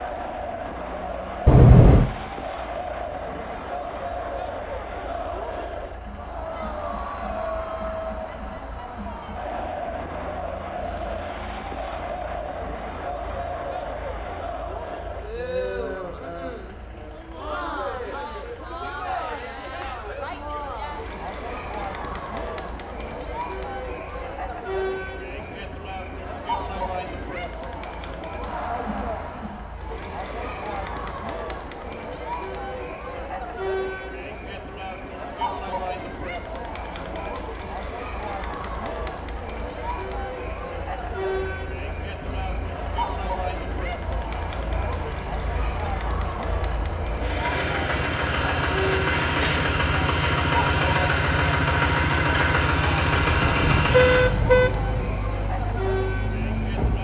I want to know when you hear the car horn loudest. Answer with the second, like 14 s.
2 s.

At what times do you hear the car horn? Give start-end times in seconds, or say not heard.
1.4-2.1, 53.1-55.1.